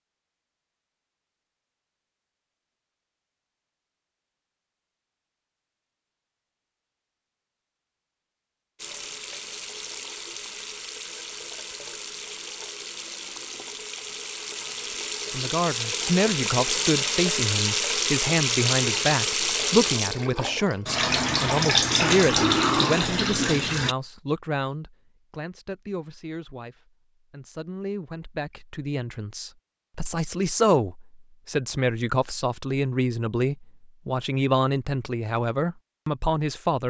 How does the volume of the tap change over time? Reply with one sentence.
The volume of the tap goes up.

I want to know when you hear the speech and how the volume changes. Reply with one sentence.
You can hear the speech from 15.3 to 36.8 s, getting quieter then louder.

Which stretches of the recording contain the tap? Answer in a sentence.
You can hear the tap from 8.8 to 23.9 s.